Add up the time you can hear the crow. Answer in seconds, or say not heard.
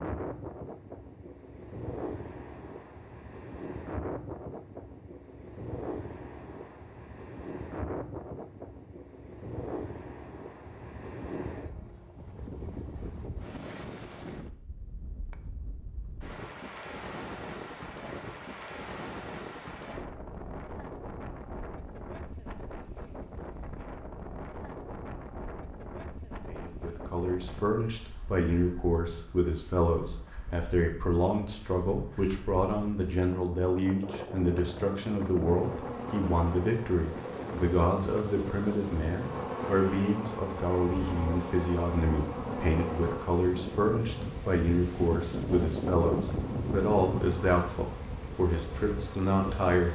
not heard.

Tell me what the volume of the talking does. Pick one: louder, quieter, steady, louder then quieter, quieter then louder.
steady.